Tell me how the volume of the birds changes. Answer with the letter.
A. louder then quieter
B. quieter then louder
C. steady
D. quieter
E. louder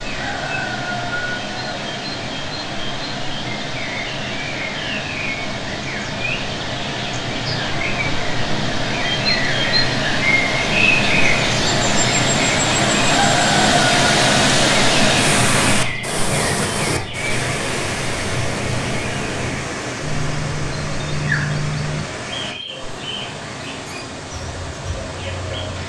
A.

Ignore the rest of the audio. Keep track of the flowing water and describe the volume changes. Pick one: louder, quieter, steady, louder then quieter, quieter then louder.
louder then quieter.